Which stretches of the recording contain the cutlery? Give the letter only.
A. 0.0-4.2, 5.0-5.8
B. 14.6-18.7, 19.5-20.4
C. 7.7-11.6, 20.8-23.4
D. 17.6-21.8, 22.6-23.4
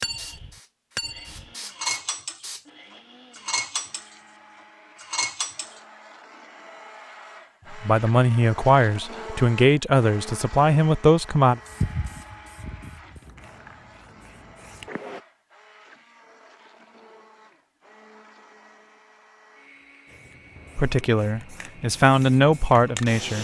A.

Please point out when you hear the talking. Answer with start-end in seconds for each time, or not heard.
7.7-11.6, 20.8-23.4.